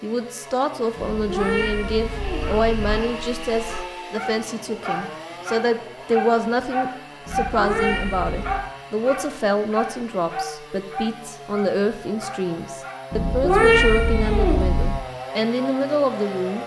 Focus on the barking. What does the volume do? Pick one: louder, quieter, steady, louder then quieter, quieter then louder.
louder then quieter.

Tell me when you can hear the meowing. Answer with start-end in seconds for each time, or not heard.
0.9-3.0, 7.2-8.6, 13.1-14.9.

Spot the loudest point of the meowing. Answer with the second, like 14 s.
14 s.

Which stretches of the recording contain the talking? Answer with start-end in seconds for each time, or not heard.
0.0-16.6.